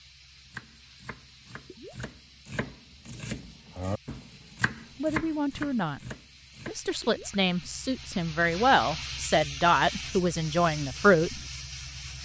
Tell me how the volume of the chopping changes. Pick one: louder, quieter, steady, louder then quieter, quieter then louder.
louder then quieter.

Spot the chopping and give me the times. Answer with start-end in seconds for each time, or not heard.
0.5-6.8.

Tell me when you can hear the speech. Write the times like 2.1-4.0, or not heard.
5.0-6.0, 6.7-11.4.